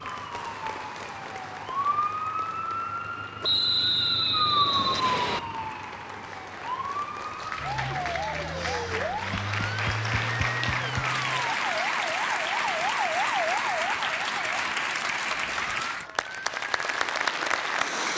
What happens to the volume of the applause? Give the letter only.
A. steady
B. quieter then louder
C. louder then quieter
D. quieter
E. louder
E.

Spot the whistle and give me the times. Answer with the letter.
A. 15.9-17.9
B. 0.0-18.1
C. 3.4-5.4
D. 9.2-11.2
C.